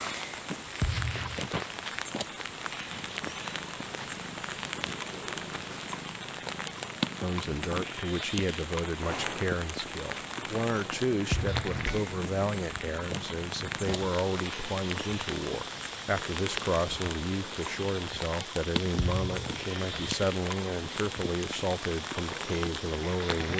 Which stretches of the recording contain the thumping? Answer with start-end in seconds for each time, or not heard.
0.8-1.5, 11.3-11.8, 18.9-19.6.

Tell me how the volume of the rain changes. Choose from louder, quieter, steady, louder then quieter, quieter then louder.
steady.